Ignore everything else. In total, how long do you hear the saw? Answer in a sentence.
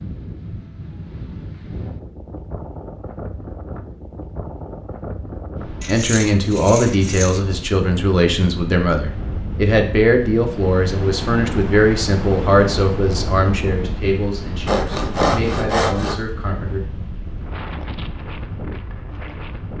You can hear the saw for 3 seconds altogether.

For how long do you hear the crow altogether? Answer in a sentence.
The crow can't be heard in this clip.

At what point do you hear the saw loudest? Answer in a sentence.
The volume of the saw peaks at 15 seconds.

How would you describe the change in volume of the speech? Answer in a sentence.
The loudness of the speech goes down.